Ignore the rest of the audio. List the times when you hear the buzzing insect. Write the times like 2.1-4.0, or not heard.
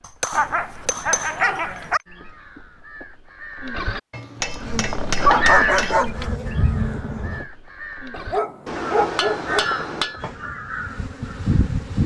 4.6-7.5, 10.2-12.0.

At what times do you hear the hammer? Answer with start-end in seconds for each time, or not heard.
0.0-2.0, 4.1-6.0, 8.7-10.2.